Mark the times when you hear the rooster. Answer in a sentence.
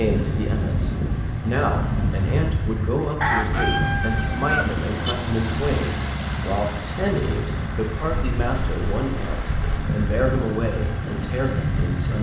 You can hear the rooster from 3.2 to 5.2 s.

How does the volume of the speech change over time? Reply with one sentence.
The loudness of the speech stays about the same.